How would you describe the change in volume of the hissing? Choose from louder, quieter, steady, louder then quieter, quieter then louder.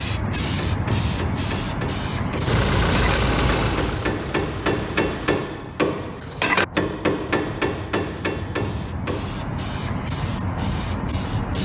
quieter then louder.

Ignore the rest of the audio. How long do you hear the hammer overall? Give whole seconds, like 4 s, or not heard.
9 s.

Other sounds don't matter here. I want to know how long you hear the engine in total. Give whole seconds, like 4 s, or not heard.
3 s.